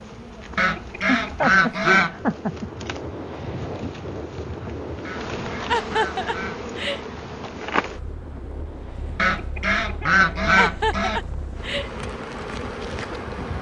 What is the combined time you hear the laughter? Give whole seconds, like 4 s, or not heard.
4 s.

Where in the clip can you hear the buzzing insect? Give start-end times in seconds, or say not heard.
0.0-13.5.